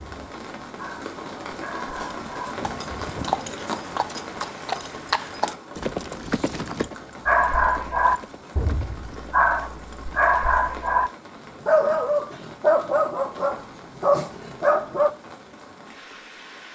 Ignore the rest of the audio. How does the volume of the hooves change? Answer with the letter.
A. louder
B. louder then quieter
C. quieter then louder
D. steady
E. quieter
E.